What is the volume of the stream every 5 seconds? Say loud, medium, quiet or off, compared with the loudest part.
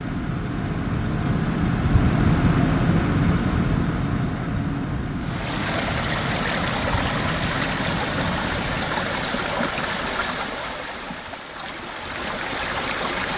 off, loud, loud.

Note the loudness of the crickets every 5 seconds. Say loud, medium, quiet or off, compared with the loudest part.
loud, medium, off.